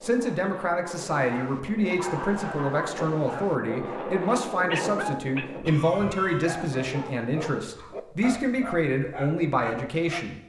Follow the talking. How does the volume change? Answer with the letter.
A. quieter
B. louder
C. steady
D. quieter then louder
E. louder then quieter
C.